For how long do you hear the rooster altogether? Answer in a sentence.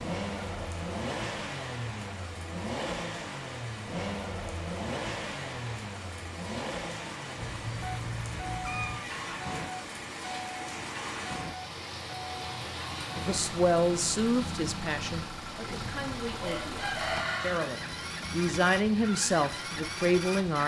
You can hear the rooster for 2 seconds altogether.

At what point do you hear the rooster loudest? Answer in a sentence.
The volume of the rooster peaks at 17 seconds.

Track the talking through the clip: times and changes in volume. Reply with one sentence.
You can hear the talking from 13.2 to 20.6 s, getting quieter then louder.